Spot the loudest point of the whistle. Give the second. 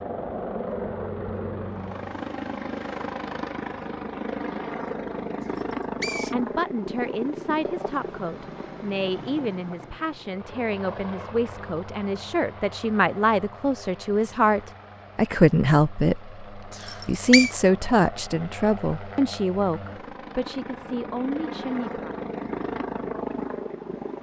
17 s.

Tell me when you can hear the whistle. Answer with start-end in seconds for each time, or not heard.
5.5-6.3, 16.7-17.5.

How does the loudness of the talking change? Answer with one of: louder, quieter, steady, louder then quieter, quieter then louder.
louder then quieter.